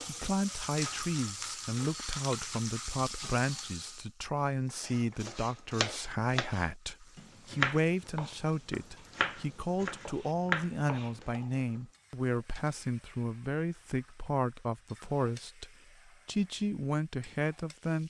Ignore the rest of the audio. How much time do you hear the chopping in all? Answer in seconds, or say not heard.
6 s.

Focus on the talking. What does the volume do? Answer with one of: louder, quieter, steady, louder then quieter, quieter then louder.
steady.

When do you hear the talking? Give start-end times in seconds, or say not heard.
0.1-18.0.